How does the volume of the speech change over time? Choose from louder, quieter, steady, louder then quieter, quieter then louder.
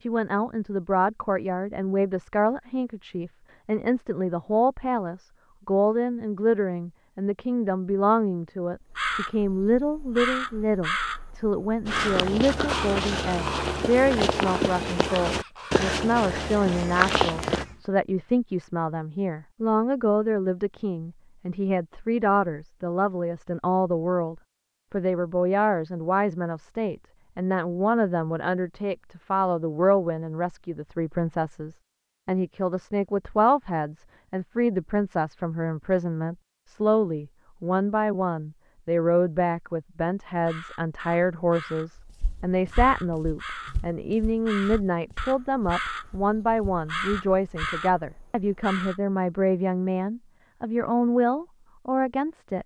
steady.